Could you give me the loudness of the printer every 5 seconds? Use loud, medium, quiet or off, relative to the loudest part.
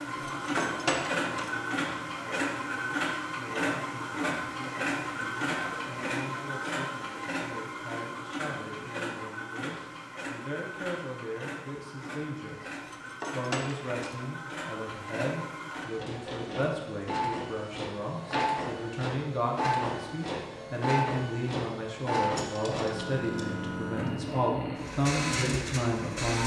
loud, loud, medium, loud, loud, loud.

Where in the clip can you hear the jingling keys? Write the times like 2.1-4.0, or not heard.
0.2-1.5, 12.8-14.2, 22.4-23.6.